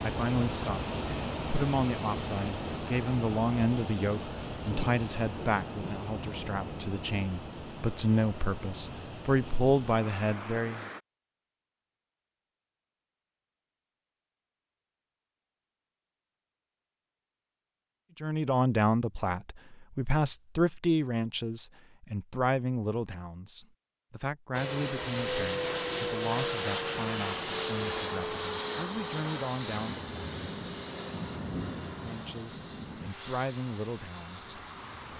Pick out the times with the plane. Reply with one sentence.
You can hear the plane from 0.0 to 11.0 s and from 24.5 to 35.1 s.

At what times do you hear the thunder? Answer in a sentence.
You can hear the thunder from 4.7 to 7.3 s and from 29.6 to 33.1 s.